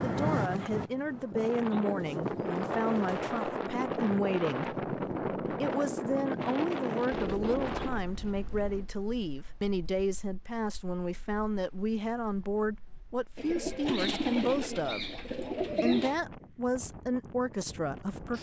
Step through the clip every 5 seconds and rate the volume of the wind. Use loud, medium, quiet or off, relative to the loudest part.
loud, loud, quiet, quiet.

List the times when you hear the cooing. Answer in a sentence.
The cooing can be heard from 1.9 to 3.4 s, from 7.1 to 8.8 s and from 13.3 to 16.1 s.